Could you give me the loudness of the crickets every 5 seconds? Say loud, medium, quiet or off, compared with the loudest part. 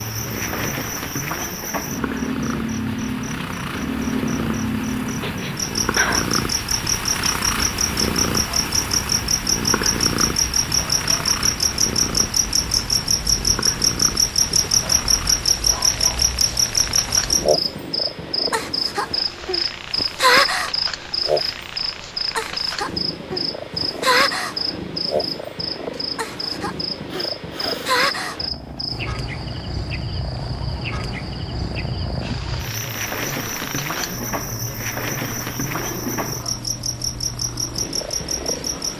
medium, loud, loud, loud, loud, medium, medium, medium.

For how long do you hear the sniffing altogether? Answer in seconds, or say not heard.
2 s.